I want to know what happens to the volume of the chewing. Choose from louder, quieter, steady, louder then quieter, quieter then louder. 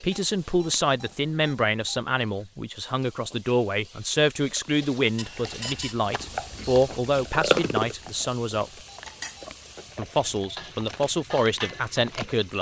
louder then quieter.